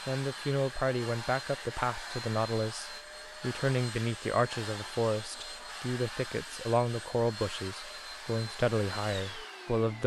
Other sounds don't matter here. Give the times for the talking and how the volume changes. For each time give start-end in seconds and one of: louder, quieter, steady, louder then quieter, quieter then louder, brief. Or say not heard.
0.1-10.0 steady.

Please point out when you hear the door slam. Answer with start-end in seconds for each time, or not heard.
not heard.